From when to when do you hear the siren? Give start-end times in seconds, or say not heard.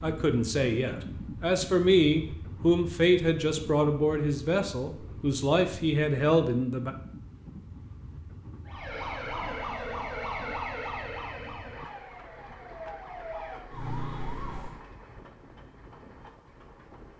8.7-14.8.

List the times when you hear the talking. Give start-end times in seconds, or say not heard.
0.0-7.0.